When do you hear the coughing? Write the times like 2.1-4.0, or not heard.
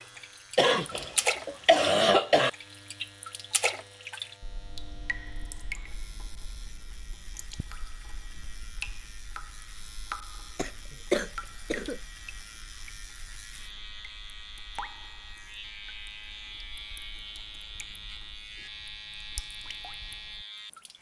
0.6-2.5, 10.6-12.0.